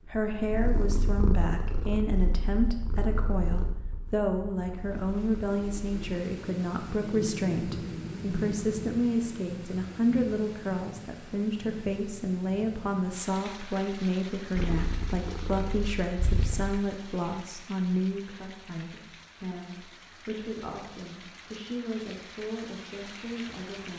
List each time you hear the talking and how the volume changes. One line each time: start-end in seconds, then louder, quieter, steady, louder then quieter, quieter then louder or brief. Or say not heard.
0.1-23.9 quieter.